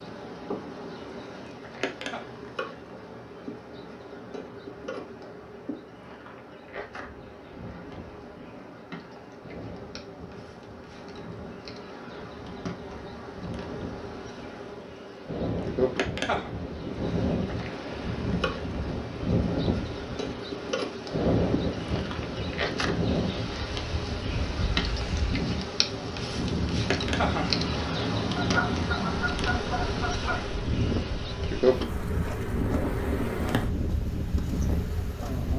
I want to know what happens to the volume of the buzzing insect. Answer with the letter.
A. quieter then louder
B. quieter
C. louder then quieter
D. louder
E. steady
D.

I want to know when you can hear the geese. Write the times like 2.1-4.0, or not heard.
28.4-30.4.